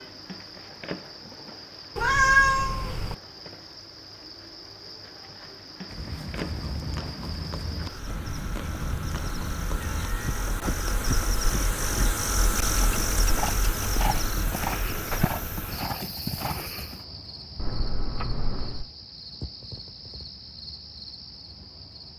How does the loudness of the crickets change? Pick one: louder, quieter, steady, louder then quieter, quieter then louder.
louder then quieter.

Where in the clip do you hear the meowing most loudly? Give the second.
2 s.